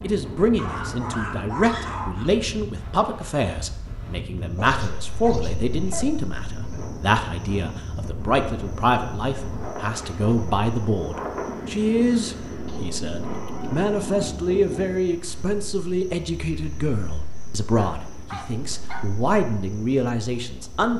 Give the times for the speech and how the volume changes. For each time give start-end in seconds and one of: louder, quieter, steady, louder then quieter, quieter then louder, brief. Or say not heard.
0.0-20.9 steady.